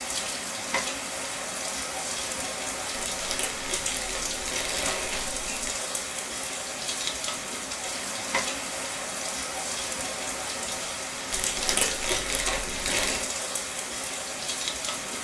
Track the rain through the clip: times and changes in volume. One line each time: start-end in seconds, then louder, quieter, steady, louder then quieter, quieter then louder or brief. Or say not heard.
0.0-15.1 steady.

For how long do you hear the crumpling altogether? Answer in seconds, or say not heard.
5 s.